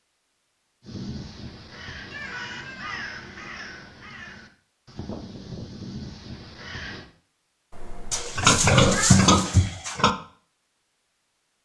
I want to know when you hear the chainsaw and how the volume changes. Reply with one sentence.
You can't hear the chainsaw here.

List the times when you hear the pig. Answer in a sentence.
You can hear the pig from 8.1 to 10.1 s.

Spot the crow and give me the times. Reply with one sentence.
The crow can be heard from 0.8 to 7.0 s.